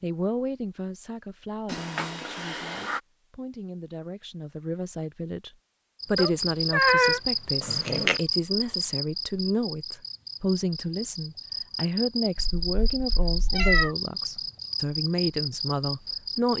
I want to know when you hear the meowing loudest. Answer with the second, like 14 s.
7 s.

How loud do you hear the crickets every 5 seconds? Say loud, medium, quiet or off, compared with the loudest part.
off, loud, loud, loud.